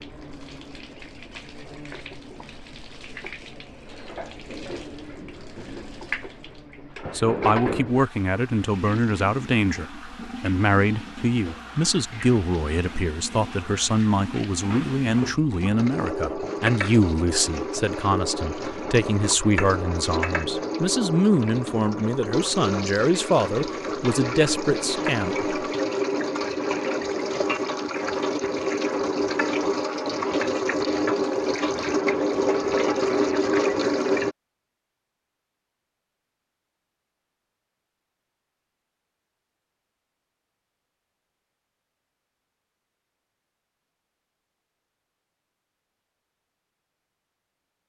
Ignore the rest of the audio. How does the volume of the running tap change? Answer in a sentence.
The volume of the running tap goes up.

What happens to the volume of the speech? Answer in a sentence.
The loudness of the speech stays about the same.